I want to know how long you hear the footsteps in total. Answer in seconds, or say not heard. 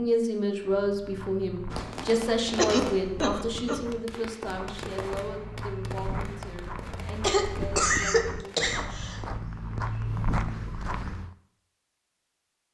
11 s.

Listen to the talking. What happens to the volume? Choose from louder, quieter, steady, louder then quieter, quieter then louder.
quieter.